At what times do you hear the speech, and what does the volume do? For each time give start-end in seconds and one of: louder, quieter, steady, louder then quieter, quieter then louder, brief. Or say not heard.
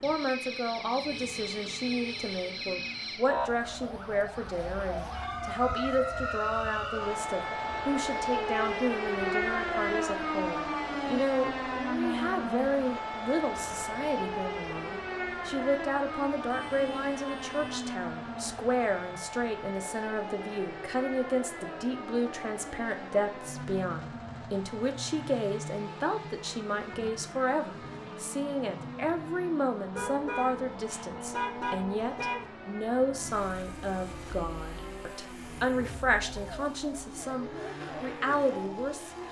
0.0-39.1 steady.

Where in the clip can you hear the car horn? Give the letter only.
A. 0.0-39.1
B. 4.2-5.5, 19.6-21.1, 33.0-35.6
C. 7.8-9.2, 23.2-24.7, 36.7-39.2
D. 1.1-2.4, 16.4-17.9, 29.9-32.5
D.